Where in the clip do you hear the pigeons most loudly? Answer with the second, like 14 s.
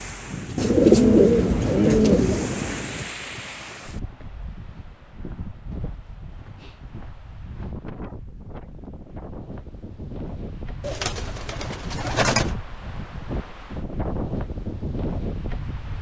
1 s.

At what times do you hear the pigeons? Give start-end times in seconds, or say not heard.
0.6-2.5, 10.8-12.6.